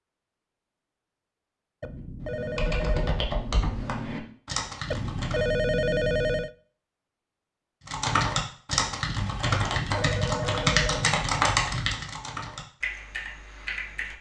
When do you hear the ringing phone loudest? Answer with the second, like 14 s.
6 s.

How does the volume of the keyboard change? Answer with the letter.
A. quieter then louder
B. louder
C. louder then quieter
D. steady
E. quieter
C.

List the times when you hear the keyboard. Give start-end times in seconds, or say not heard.
2.1-5.5, 7.8-14.1.